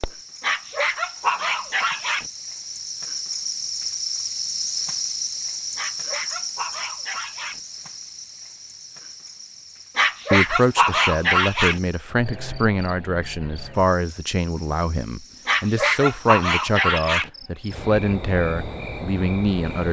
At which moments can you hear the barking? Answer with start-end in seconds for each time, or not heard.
0.4-2.2, 5.8-7.6, 9.9-11.8, 15.4-17.3.